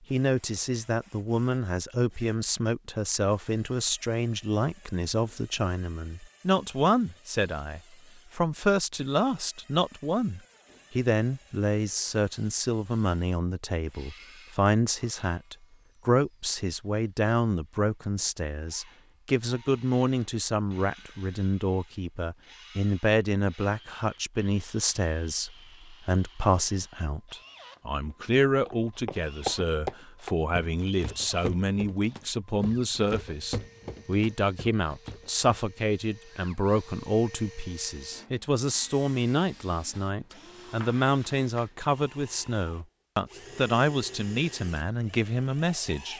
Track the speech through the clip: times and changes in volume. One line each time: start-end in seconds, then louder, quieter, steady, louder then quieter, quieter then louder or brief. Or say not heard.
0.1-46.1 steady.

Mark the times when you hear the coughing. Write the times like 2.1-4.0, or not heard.
not heard.